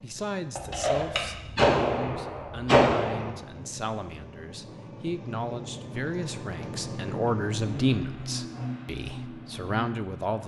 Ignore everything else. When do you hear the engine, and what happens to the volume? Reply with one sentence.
You can hear the engine from 0.0 to 10.4 s, getting louder.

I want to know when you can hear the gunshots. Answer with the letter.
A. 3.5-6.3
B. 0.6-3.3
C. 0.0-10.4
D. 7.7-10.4
B.